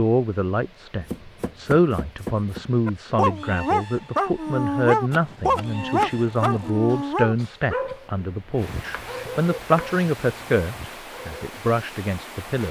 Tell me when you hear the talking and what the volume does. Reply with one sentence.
The talking can be heard from 0.0 to 12.6 s, at a steady volume.